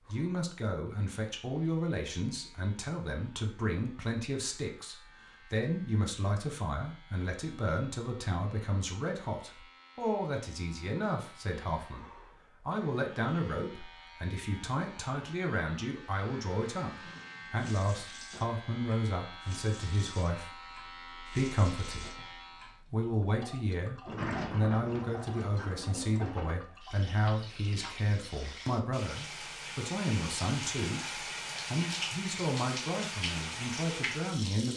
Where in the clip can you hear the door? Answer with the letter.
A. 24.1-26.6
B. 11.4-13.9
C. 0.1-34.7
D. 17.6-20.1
A.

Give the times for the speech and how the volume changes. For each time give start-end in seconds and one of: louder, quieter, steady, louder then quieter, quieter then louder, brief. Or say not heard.
0.1-34.7 steady.